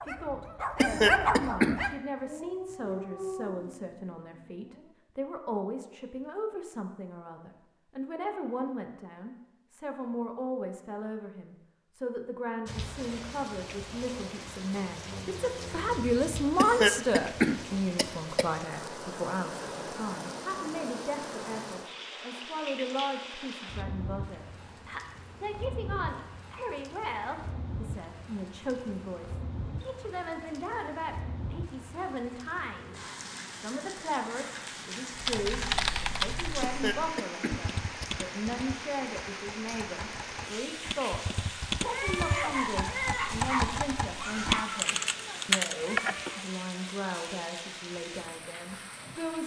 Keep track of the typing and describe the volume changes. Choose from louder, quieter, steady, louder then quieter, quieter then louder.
quieter then louder.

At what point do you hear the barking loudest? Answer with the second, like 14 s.
1 s.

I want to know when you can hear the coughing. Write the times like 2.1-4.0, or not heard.
0.8-1.8, 16.6-18.5, 36.6-38.0.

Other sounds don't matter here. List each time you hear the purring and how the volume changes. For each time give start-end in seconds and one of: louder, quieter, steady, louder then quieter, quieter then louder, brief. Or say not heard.
not heard.